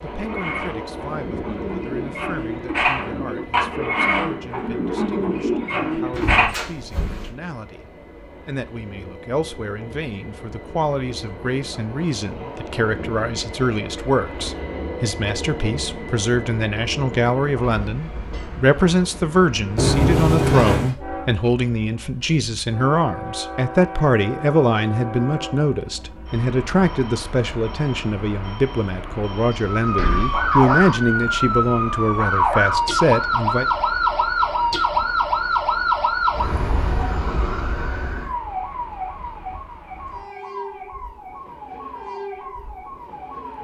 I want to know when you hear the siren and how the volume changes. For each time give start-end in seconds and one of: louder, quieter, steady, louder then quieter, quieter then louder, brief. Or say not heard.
29.6-43.5 quieter.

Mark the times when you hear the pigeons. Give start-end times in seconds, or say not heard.
0.1-6.5.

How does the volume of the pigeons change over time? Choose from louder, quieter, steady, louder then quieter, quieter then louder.
louder.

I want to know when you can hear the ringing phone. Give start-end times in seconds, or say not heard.
not heard.